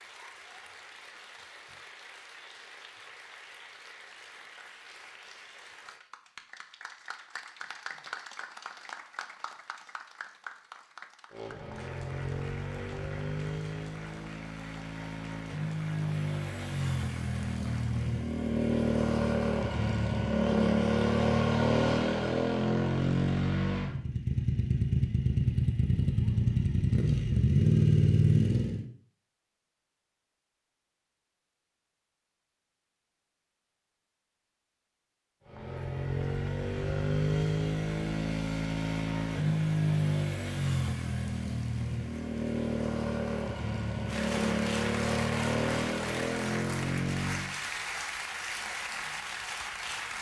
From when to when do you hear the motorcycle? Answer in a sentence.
The motorcycle can be heard from 11.3 to 28.9 s and from 35.5 to 47.5 s.